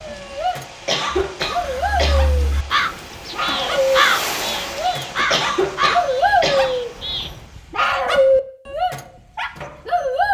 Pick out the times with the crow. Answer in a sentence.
You can hear the crow from 1.2 to 7.5 s.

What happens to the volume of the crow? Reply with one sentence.
The loudness of the crow goes up, then down.